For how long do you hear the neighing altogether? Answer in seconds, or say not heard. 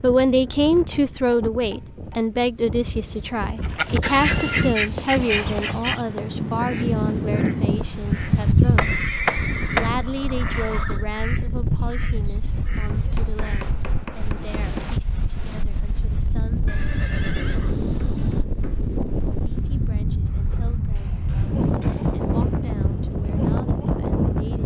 5 s.